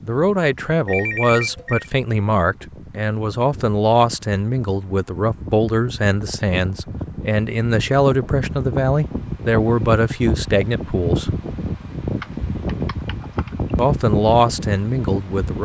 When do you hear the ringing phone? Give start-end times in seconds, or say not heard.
0.8-1.9.